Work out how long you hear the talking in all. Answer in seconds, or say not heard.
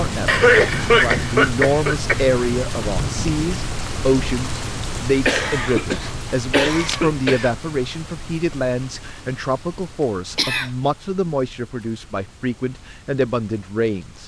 14 s.